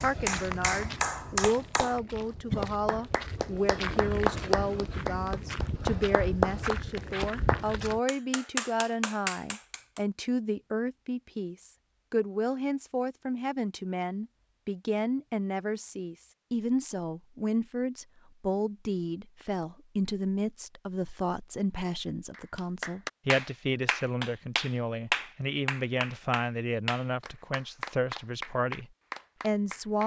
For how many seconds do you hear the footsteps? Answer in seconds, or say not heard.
8 s.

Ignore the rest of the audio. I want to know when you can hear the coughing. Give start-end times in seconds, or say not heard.
2.5-3.0.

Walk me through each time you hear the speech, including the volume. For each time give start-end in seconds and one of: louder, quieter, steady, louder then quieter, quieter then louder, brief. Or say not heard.
0.0-30.0 steady.